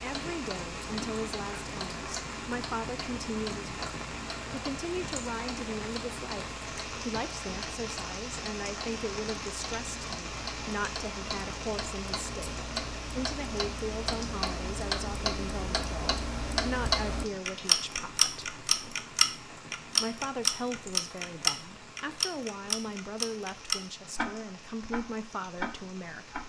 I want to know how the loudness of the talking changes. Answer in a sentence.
The volume of the talking stays about the same.